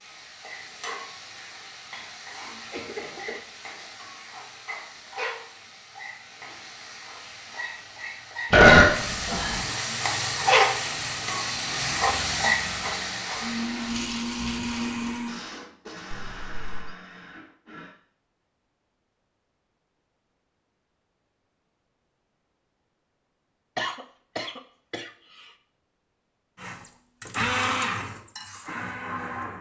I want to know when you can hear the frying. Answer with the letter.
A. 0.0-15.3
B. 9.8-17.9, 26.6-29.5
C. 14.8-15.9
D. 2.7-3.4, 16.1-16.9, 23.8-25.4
A.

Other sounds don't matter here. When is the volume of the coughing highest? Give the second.
24 s.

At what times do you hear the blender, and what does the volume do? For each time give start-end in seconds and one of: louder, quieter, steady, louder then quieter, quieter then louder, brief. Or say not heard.
9.8-17.9 louder then quieter
26.6-29.5 brief.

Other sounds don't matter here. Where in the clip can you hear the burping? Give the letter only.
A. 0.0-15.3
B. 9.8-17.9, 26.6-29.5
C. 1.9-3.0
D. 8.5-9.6
D.